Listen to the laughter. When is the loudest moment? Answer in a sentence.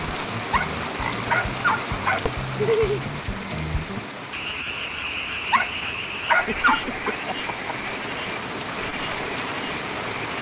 The loudest moment of the laughter is at 3 seconds.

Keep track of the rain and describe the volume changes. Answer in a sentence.
The volume of the rain goes down, then up.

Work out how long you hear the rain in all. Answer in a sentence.
You can hear the rain for 10 seconds altogether.